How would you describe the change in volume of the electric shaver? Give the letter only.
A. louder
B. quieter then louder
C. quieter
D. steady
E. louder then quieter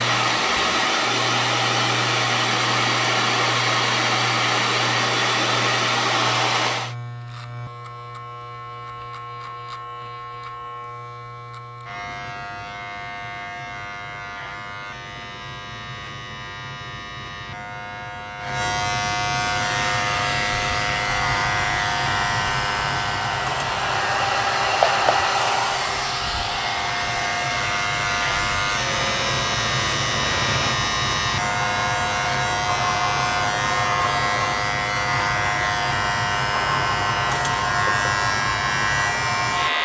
A.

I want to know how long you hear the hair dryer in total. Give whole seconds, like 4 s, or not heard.
27 s.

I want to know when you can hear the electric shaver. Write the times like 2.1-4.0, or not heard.
0.0-39.8.